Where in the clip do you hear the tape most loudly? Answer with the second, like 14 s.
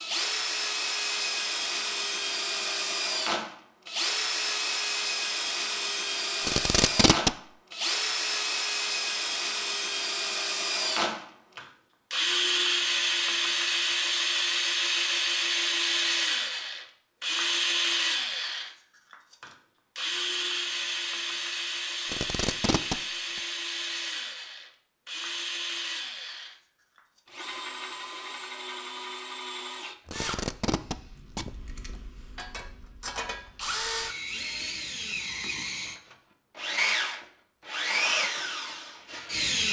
7 s.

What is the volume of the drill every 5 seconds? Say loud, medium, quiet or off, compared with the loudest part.
loud, loud, loud, loud, medium, medium, medium, loud.